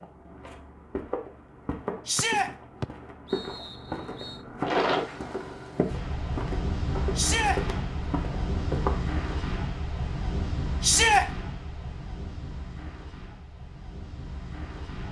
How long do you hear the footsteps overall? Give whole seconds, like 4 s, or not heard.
9 s.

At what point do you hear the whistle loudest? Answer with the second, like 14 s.
3 s.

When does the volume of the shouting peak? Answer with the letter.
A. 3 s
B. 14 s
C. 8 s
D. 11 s
D.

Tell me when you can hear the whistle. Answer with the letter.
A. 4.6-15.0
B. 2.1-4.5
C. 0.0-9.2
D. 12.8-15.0
B.